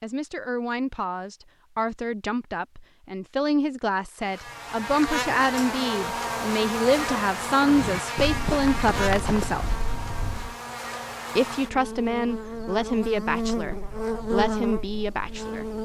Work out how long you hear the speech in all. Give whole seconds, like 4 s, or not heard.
14 s.